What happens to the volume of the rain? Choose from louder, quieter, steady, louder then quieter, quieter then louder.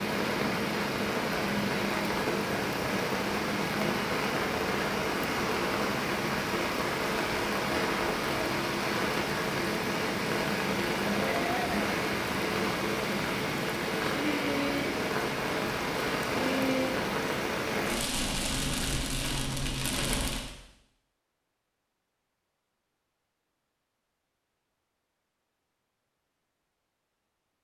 steady.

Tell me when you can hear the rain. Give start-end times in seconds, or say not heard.
0.0-20.5.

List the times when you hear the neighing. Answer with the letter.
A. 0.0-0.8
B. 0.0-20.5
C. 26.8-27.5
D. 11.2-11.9
D.